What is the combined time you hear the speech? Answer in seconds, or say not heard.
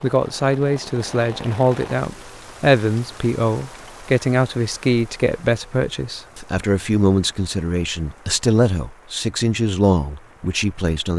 11 s.